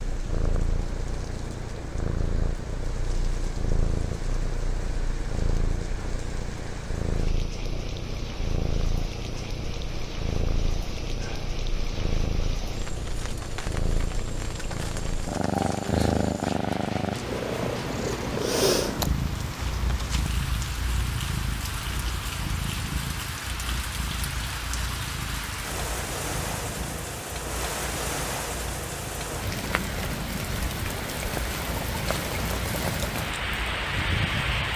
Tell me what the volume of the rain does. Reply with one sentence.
The loudness of the rain goes up.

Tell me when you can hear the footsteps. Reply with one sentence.
You can't hear the footsteps here.